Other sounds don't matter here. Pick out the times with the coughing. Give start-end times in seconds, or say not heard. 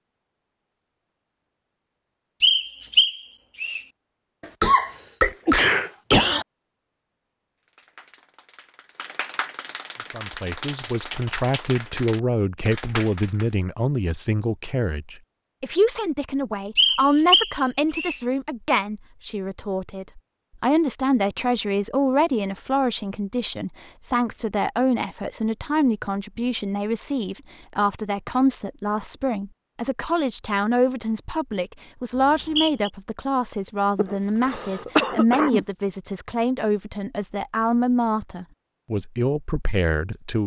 4.4-6.5, 34.0-35.6.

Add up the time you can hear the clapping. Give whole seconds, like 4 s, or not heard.
6 s.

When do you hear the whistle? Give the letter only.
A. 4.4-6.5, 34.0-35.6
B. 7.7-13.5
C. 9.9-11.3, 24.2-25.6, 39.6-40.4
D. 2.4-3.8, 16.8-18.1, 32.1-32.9
D.